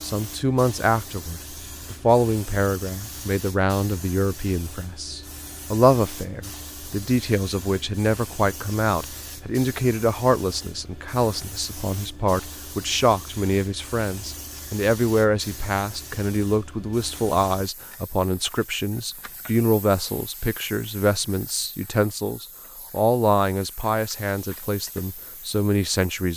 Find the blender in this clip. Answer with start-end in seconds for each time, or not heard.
not heard.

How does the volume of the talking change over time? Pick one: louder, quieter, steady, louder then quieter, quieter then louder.
steady.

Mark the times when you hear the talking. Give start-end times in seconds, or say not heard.
0.0-26.3.